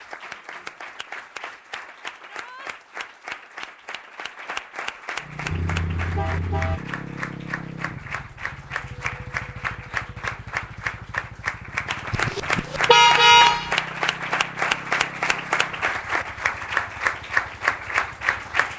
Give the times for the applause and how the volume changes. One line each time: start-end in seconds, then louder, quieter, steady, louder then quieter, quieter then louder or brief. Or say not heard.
0.0-18.7 louder.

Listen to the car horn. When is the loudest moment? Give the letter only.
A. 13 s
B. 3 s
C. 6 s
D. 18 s
A.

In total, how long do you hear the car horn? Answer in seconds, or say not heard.
3 s.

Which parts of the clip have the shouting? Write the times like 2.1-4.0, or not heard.
2.2-2.7.